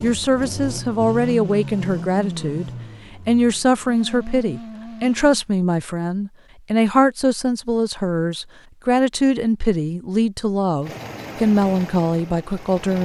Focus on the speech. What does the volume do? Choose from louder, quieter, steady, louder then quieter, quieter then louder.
steady.